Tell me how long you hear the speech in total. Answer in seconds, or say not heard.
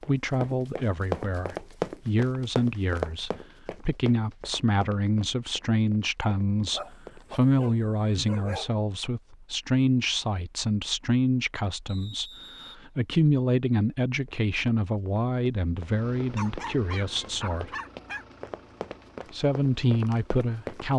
19 s.